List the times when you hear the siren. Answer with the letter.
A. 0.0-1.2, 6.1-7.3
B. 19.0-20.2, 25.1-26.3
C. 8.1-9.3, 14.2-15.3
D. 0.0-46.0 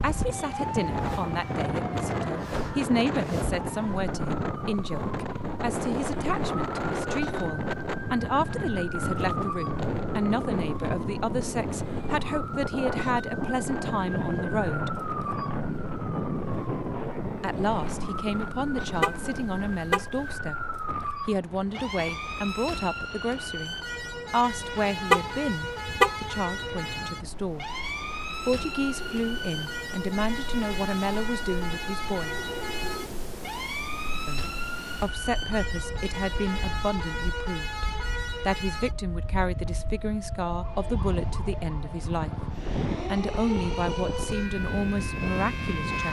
D.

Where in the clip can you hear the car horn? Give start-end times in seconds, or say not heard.
19.0-20.2, 25.1-26.3.